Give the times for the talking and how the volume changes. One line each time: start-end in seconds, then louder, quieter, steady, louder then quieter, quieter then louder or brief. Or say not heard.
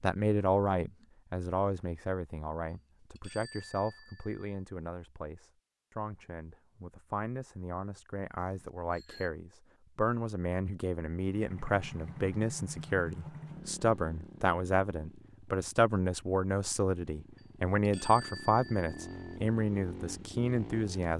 0.0-21.1 quieter then louder.